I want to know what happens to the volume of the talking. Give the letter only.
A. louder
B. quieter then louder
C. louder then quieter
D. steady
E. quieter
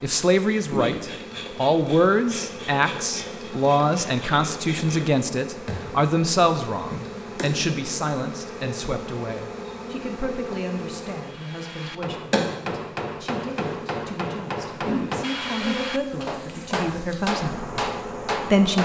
B.